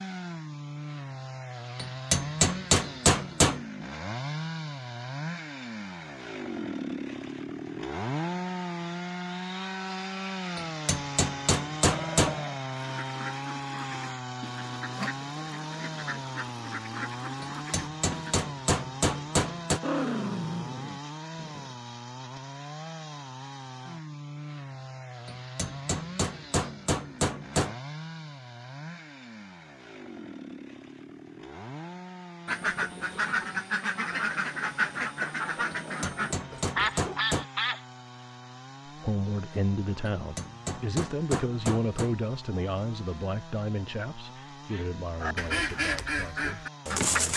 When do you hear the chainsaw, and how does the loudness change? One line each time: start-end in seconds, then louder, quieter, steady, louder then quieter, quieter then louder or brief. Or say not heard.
0.0-47.3 quieter.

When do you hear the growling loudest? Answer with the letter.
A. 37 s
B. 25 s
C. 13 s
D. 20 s
D.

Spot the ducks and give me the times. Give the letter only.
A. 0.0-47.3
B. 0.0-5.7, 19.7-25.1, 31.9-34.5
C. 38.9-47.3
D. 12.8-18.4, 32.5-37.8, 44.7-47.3
D.